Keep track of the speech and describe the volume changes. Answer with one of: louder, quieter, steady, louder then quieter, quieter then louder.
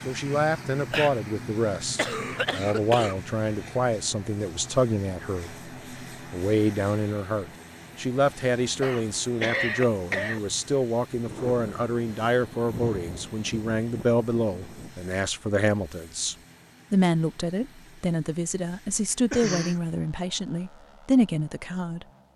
steady.